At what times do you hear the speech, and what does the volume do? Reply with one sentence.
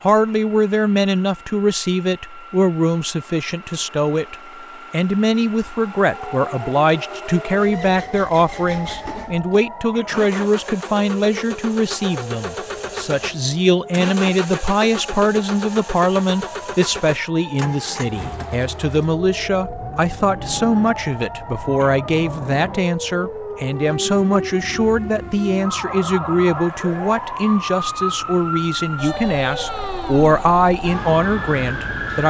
The speech can be heard from 0.0 to 32.2 s, at a steady volume.